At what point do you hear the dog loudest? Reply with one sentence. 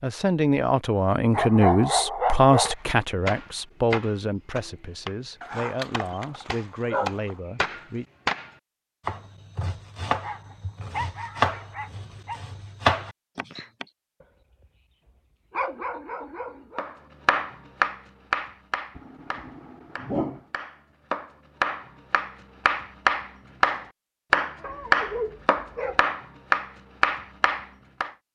The volume of the dog peaks at 2 seconds.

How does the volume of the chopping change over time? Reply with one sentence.
The volume of the chopping goes up.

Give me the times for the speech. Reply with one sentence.
The speech can be heard from 0.0 to 8.1 s.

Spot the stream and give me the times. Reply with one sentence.
The stream can't be heard in this clip.